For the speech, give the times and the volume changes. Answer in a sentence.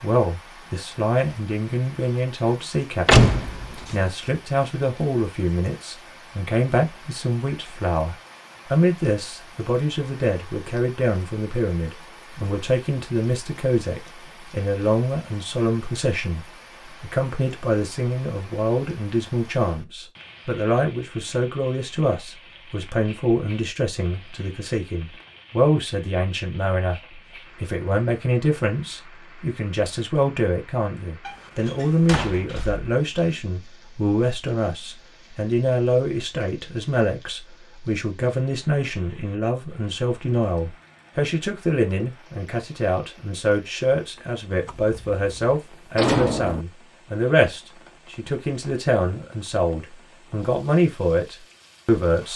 You can hear the speech from 0.0 to 52.3 s, at a steady volume.